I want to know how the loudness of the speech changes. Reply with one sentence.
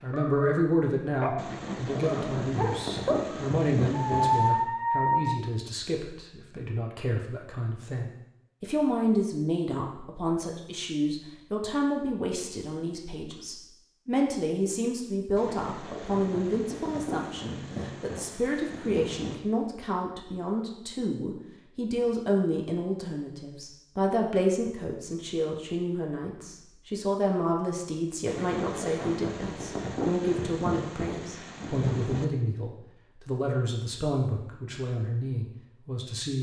The volume of the speech stays about the same.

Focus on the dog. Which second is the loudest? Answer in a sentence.
The loudest moment of the dog is at 4 seconds.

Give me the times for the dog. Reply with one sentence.
The dog can be heard from 0.0 to 5.3 s.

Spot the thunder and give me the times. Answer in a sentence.
The thunder can be heard from 1.4 to 4.7 s, from 15.3 to 19.4 s and from 28.2 to 32.2 s.